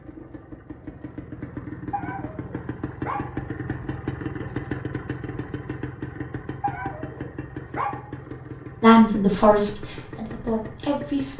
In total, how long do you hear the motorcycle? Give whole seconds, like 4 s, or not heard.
11 s.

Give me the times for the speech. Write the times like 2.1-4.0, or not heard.
8.8-11.3.